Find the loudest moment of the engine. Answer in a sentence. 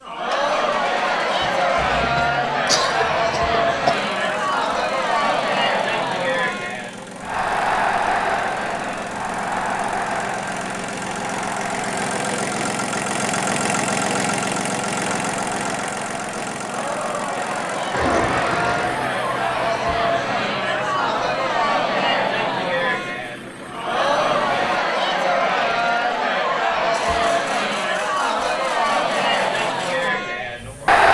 The loudest moment of the engine is at 14 seconds.